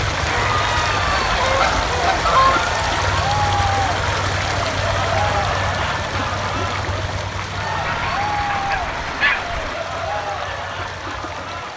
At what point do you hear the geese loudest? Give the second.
2 s.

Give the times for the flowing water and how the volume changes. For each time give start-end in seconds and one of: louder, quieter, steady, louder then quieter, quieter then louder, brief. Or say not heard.
0.0-11.7 quieter.